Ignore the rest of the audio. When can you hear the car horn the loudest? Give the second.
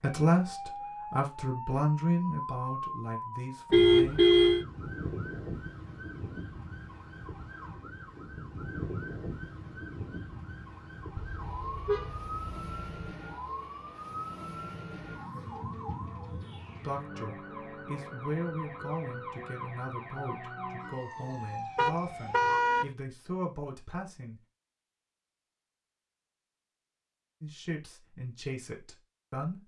4 s.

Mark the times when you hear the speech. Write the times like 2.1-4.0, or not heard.
0.0-4.2, 16.8-24.4, 27.4-29.6.